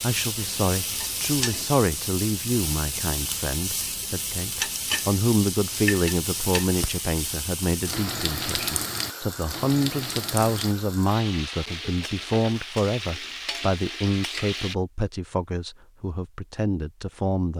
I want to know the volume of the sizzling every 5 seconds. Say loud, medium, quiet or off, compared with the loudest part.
loud, loud, loud, off.